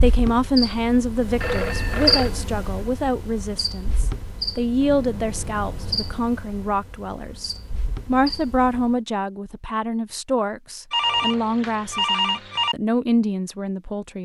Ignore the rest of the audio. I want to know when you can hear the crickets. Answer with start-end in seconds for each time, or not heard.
0.0-8.9.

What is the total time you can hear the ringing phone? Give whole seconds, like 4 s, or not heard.
4 s.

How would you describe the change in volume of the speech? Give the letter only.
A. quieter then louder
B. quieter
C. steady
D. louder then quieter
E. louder
C.